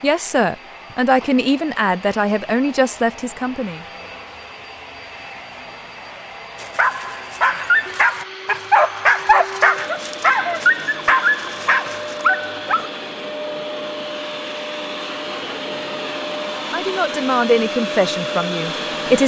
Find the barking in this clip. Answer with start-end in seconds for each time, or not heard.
6.5-12.9.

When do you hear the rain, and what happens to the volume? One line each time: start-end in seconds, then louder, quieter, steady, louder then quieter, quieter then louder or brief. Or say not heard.
not heard.